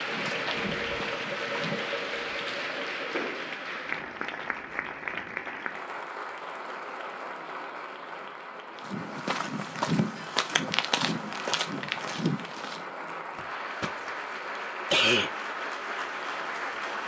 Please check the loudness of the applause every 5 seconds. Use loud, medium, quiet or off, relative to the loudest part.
loud, medium, medium, loud.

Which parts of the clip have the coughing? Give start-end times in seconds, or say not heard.
13.3-13.9, 14.9-15.3.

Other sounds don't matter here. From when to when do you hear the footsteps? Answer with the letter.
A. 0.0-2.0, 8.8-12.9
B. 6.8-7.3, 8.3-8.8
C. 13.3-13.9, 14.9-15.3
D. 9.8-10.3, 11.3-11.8
A.